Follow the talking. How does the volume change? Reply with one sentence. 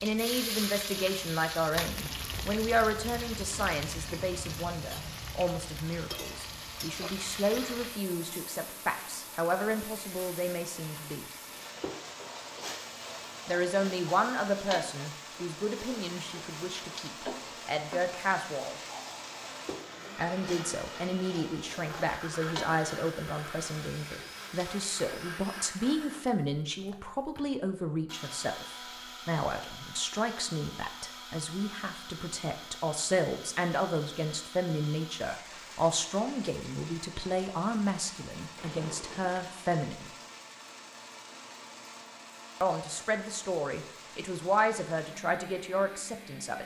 The loudness of the talking stays about the same.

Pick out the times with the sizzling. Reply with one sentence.
You can hear the sizzling from 0.0 to 25.3 s.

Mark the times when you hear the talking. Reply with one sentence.
The talking can be heard from 0.0 to 11.2 s, from 13.4 to 18.8 s, from 20.1 to 40.1 s and from 42.6 to 46.6 s.